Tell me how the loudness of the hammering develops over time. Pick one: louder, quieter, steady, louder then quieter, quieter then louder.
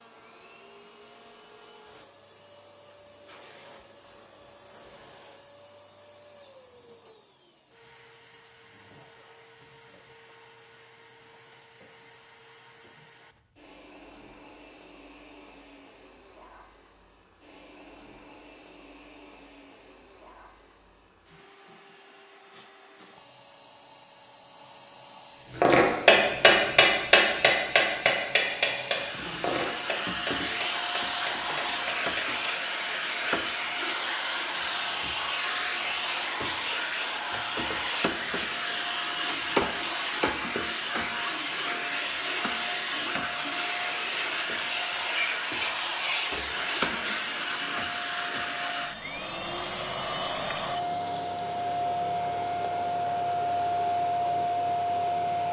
quieter.